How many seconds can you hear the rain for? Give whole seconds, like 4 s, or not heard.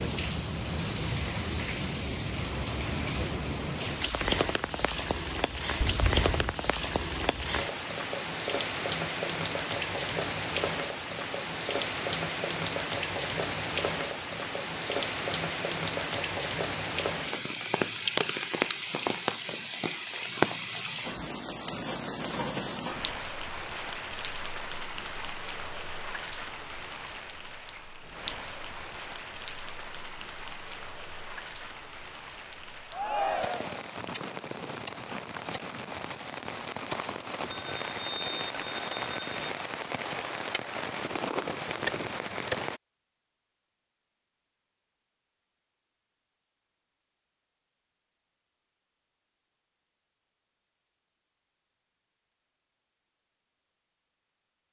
43 s.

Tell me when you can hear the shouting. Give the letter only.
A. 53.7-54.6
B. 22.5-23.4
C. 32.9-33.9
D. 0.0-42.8
C.